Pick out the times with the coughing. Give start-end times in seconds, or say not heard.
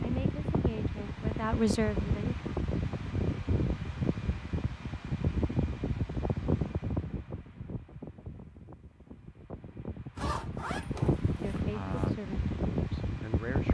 not heard.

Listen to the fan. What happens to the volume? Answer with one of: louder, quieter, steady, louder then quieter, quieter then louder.
quieter then louder.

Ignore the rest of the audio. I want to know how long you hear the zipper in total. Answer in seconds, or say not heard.
2 s.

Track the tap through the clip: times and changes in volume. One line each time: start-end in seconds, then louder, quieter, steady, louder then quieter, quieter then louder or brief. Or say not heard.
not heard.